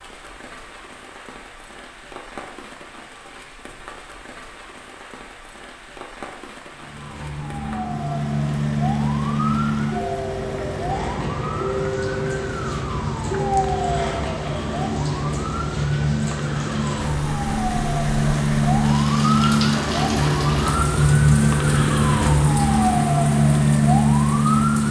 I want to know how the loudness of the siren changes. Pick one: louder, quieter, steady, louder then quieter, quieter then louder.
louder.